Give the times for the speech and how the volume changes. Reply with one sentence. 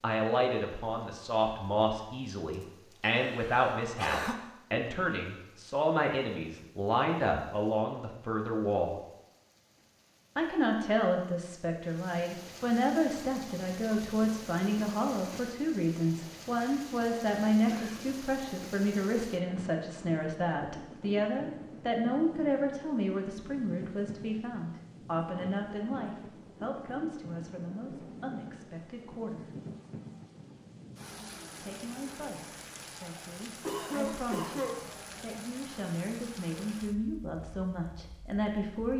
You can hear the speech from 0.0 to 8.9 s, at a steady volume; from 10.3 to 29.5 s, getting quieter; and from 31.6 to 38.9 s, getting louder.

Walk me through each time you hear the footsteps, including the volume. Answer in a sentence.
You can't hear the footsteps here.